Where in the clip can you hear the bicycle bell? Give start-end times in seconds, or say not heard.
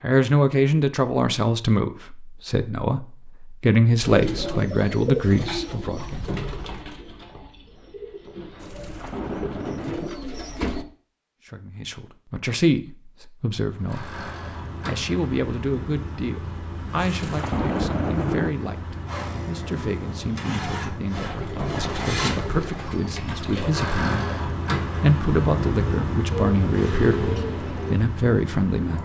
not heard.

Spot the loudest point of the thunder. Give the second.
18 s.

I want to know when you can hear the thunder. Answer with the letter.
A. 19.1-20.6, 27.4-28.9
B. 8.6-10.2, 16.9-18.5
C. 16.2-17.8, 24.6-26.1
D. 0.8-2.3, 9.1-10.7
B.